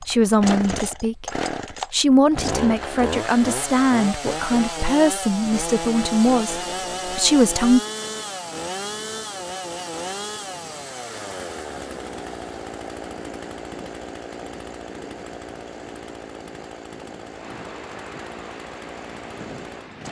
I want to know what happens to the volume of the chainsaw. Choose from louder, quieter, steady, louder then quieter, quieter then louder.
quieter.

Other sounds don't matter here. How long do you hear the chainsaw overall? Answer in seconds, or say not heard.
20 s.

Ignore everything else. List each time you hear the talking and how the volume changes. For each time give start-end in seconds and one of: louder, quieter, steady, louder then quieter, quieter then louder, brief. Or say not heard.
0.0-7.8 steady.